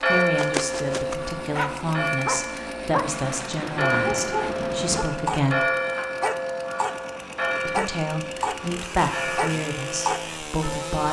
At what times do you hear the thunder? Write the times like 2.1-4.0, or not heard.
3.1-5.0.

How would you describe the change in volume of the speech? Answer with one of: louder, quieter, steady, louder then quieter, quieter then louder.
steady.